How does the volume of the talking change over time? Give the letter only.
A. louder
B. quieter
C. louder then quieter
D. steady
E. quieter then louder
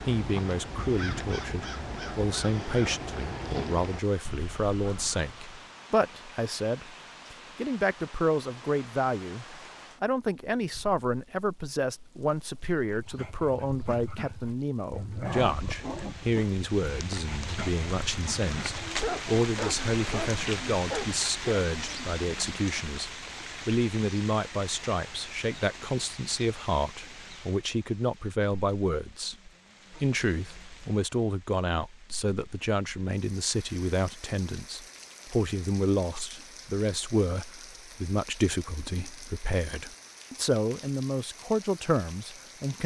D.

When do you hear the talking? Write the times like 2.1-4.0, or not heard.
0.0-42.8.